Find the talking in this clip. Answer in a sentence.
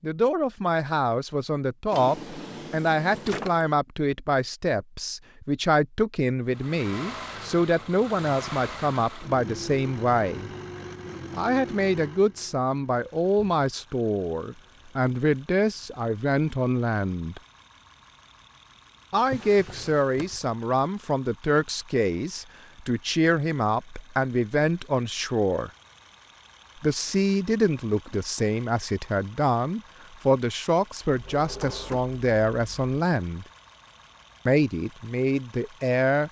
You can hear the talking from 0.0 to 10.5 s, from 11.3 to 17.4 s, from 19.1 to 25.7 s, from 26.8 to 33.5 s and from 34.5 to 36.2 s.